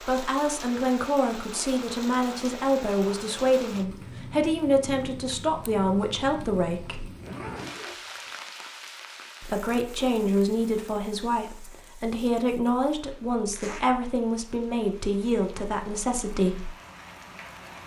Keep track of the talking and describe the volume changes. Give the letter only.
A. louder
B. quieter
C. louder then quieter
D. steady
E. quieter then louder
D.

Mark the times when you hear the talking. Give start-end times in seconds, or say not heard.
0.0-7.1, 9.4-16.7.